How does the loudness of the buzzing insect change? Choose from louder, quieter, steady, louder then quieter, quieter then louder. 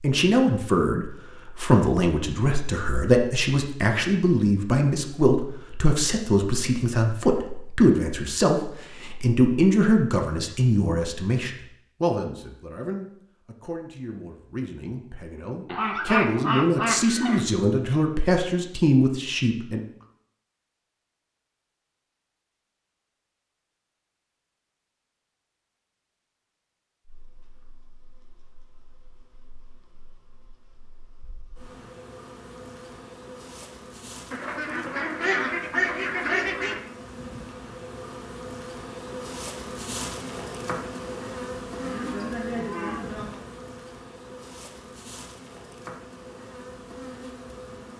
louder then quieter.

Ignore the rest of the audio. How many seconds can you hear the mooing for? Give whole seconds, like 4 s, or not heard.
2 s.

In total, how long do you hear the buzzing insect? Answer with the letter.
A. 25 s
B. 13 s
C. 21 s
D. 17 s
C.